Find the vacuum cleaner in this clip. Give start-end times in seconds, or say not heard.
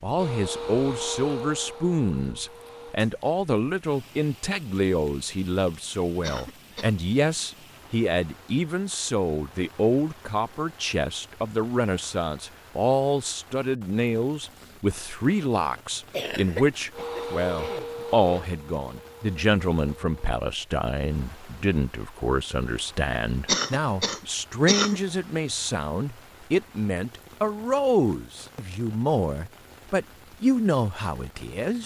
0.0-3.0, 16.9-20.4.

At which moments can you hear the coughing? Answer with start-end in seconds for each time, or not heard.
6.2-6.9, 16.1-18.4, 23.4-25.0.